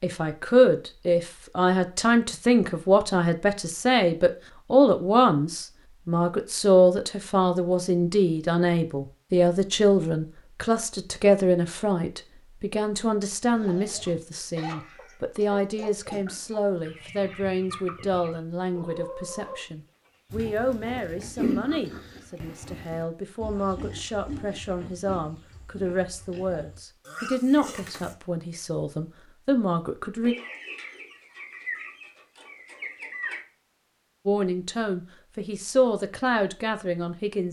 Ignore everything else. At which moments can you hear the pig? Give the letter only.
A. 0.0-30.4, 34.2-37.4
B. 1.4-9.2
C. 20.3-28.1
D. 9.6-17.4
C.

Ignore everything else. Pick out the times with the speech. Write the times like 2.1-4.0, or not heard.
0.0-30.4, 34.2-37.4.